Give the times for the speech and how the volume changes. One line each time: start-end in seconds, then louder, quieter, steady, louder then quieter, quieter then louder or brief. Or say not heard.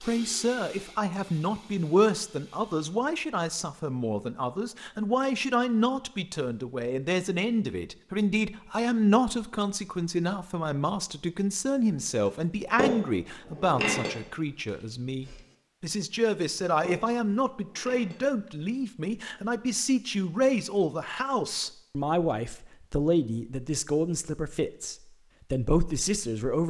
0.0-26.6 steady.